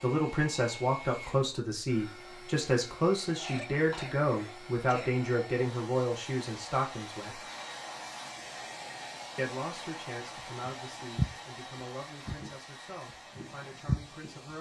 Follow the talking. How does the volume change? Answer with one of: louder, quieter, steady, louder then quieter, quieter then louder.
quieter.